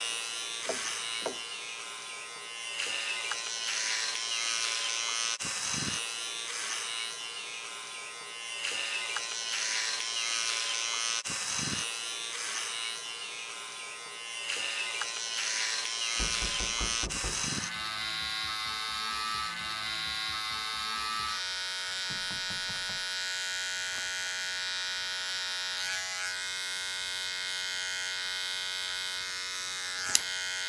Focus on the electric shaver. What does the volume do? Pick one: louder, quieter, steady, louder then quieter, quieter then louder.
steady.